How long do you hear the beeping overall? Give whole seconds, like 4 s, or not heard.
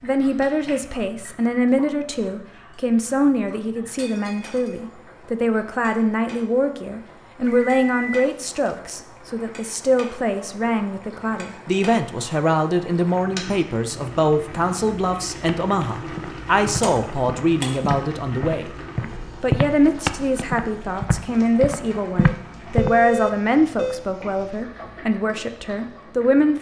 3 s.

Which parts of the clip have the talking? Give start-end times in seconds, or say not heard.
0.0-18.7, 19.4-26.5.